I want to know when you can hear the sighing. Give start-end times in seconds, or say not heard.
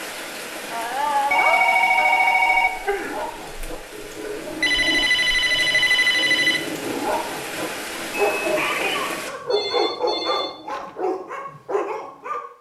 0.7-3.1, 8.2-9.2.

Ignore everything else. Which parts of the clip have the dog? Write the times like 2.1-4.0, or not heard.
3.0-12.4.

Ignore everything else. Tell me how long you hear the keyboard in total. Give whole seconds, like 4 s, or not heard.
not heard.